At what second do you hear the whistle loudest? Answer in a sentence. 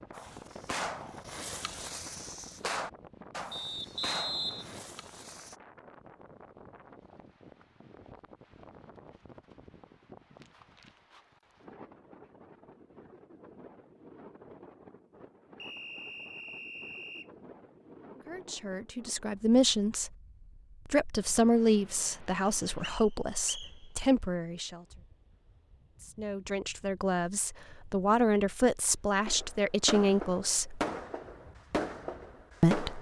The volume of the whistle peaks at 4 seconds.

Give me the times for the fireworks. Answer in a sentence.
You can hear the fireworks from 0.1 to 5.5 s and from 29.2 to 32.9 s.